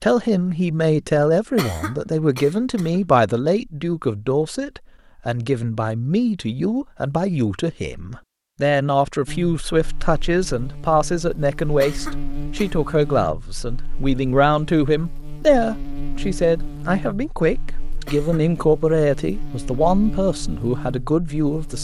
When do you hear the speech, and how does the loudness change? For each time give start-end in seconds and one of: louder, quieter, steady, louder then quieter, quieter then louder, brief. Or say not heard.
0.0-21.8 steady.